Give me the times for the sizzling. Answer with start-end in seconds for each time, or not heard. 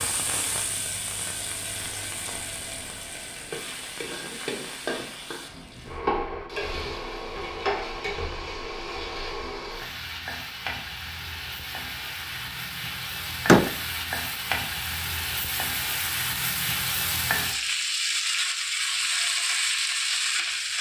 0.0-20.7.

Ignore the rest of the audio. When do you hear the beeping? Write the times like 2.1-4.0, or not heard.
not heard.